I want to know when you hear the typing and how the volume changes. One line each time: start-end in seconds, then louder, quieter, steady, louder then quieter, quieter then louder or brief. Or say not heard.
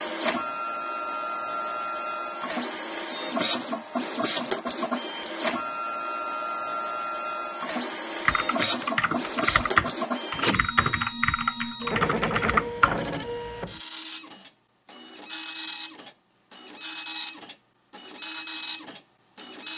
8.2-12.9 louder then quieter.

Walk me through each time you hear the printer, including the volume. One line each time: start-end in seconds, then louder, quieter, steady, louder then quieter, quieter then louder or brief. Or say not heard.
0.0-19.7 steady.